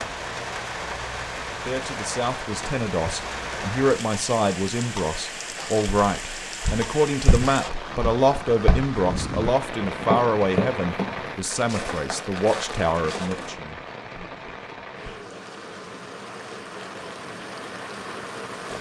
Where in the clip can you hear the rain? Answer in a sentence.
The rain can be heard from 0.0 to 18.7 s.